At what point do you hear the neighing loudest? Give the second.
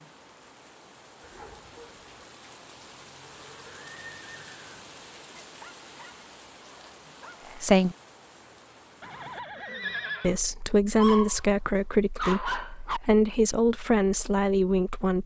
10 s.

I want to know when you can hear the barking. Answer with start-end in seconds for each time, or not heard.
1.2-2.2, 5.3-7.7, 10.9-13.0.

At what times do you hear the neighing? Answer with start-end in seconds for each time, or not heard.
3.2-4.7, 9.0-10.4.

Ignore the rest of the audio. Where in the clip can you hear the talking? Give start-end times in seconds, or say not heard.
7.5-8.0, 10.2-15.2.